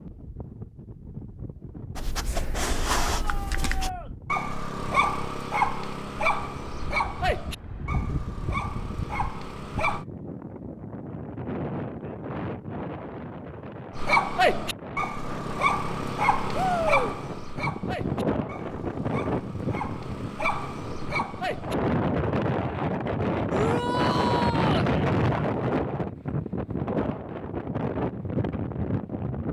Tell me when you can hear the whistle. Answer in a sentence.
The whistle can't be heard in this clip.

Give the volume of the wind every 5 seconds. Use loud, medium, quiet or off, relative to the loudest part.
quiet, medium, medium, medium, loud, loud.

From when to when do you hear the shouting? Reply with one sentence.
The shouting can be heard from 3.0 to 4.1 s, from 16.5 to 17.1 s and from 23.5 to 24.9 s.